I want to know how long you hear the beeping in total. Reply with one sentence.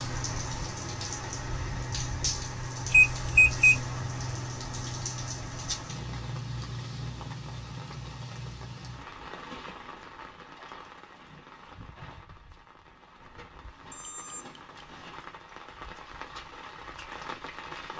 The beeping can be heard for 2 seconds in total.